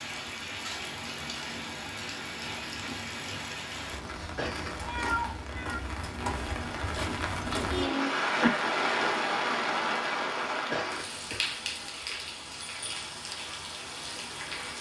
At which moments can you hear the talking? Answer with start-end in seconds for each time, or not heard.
not heard.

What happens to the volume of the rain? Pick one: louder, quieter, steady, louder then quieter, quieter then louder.
louder then quieter.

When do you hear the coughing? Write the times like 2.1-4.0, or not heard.
4.3-5.2, 10.7-11.6.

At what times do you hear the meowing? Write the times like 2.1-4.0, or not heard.
4.8-5.8.